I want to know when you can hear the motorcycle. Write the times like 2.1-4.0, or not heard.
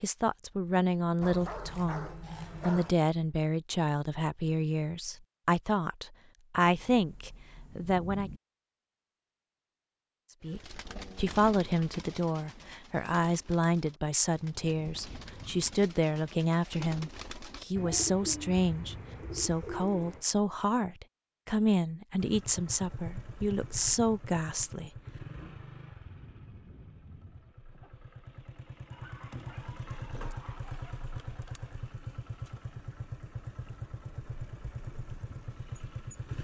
22.1-36.3.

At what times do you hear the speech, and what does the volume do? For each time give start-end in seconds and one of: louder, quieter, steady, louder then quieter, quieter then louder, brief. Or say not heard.
0.0-8.3 steady
10.4-24.9 steady.